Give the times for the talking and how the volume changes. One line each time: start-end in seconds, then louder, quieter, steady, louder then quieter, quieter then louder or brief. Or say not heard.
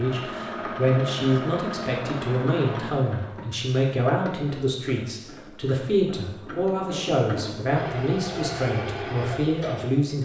0.0-10.1 steady.